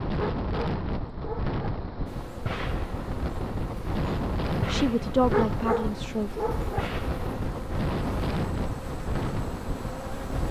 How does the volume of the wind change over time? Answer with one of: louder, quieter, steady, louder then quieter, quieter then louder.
steady.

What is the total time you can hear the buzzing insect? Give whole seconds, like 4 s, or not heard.
8 s.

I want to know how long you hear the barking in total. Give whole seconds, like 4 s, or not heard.
3 s.